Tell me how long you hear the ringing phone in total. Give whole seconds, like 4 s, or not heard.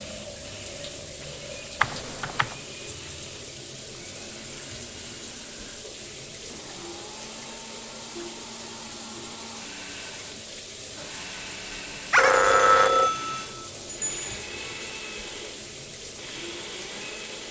3 s.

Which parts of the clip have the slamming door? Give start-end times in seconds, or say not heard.
not heard.